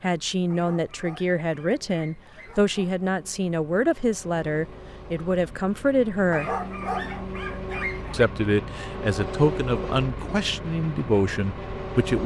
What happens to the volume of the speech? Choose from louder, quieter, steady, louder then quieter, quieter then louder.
steady.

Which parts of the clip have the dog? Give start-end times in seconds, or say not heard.
0.5-3.0, 6.3-8.3.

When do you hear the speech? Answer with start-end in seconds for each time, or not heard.
0.0-6.5, 8.1-12.2.